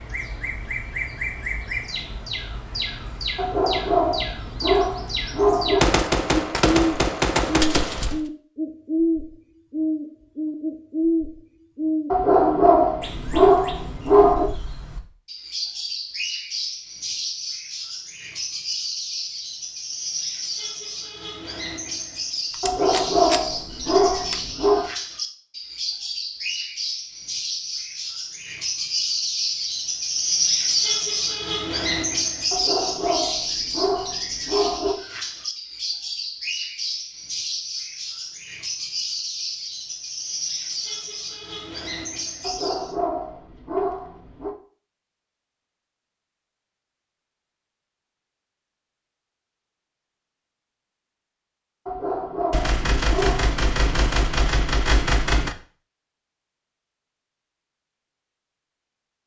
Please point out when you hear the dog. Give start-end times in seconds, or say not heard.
3.4-5.8, 12.1-14.5, 22.6-24.9, 32.5-35.0, 42.4-44.5, 51.9-53.5.